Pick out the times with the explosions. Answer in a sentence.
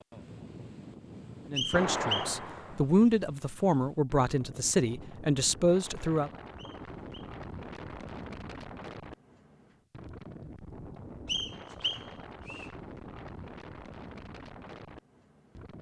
You can hear the explosions from 1.7 to 2.8 s.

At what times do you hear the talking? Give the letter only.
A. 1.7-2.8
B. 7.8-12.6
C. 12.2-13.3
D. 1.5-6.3
D.